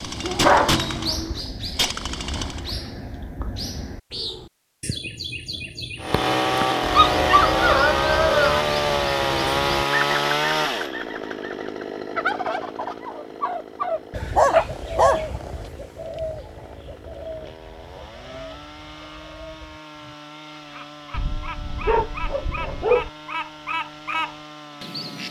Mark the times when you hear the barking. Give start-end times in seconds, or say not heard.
0.2-1.4, 7.0-8.7, 14.1-15.6, 21.1-23.1.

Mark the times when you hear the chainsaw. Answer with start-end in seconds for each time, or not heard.
0.0-2.7, 6.0-25.2.